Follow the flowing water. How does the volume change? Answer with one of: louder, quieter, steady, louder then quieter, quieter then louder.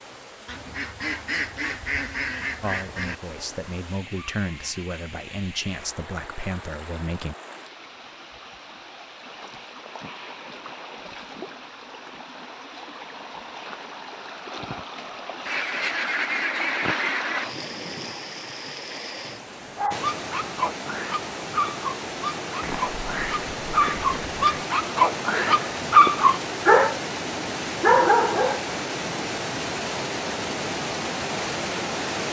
louder.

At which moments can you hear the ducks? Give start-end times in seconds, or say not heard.
0.5-3.1, 15.4-17.4, 22.6-24.6.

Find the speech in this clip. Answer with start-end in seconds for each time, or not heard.
2.6-7.3.